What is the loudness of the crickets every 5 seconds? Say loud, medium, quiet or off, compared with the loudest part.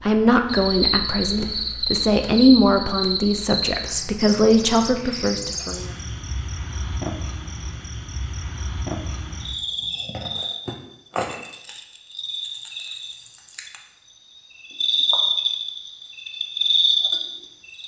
loud, medium, medium, loud.